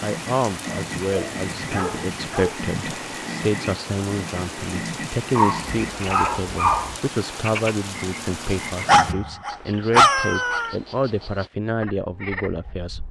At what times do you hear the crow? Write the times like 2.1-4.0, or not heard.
not heard.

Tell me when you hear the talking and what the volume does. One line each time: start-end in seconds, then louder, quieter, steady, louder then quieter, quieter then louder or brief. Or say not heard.
0.0-13.0 steady.